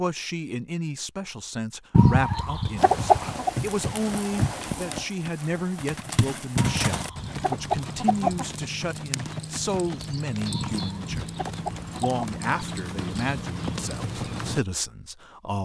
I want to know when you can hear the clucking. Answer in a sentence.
The clucking can be heard from 1.9 to 3.5 s, from 6.5 to 8.4 s and from 10.5 to 12.2 s.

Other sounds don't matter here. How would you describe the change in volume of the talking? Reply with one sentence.
The volume of the talking stays about the same.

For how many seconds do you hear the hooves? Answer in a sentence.
The hooves can be heard for 12 seconds in total.